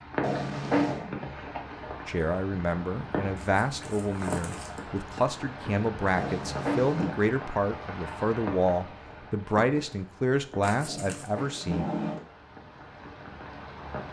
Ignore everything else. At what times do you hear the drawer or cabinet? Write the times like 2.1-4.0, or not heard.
0.2-1.1, 6.2-7.2, 10.8-12.2.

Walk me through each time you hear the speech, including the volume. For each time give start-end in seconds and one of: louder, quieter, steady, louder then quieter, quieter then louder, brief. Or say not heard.
2.0-11.8 steady.